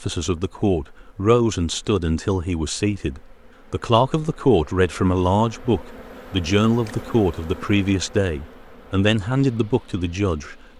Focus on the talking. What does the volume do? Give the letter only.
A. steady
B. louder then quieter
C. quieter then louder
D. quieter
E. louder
A.